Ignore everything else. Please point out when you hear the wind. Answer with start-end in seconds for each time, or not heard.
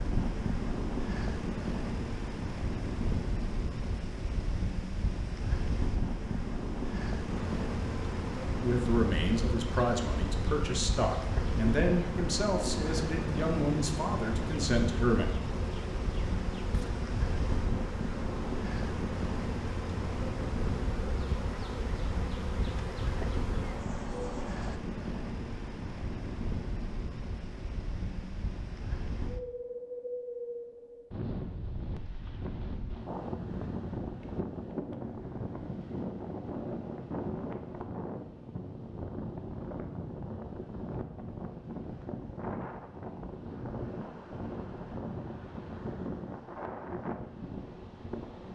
0.0-48.5.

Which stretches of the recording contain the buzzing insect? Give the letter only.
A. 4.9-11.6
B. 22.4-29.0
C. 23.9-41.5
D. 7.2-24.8
D.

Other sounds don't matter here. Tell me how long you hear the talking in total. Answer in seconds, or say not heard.
7 s.